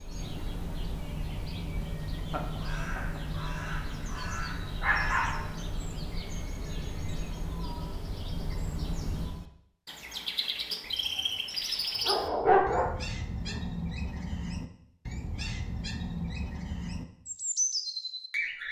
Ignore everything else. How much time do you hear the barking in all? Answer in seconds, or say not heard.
2 s.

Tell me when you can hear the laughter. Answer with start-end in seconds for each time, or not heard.
2.2-3.2.